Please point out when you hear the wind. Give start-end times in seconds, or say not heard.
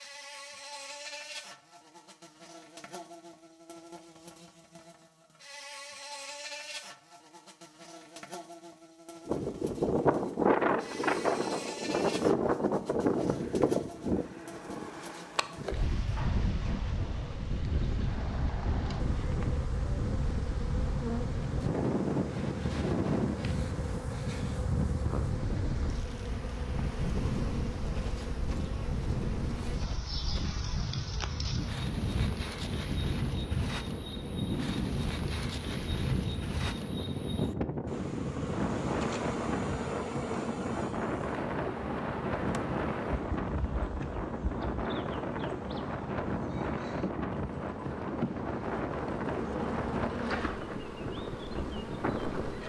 9.2-52.6.